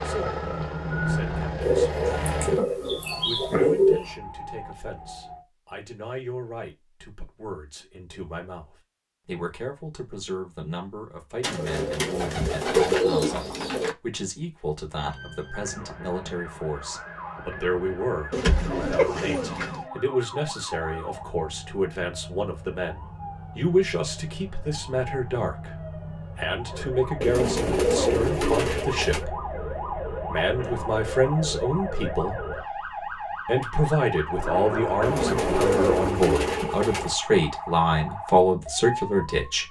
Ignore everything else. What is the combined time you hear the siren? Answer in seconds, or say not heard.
30 s.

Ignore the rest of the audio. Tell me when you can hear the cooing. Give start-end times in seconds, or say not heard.
1.6-4.2, 11.4-13.9, 18.3-19.9, 27.2-29.2, 35.0-37.1.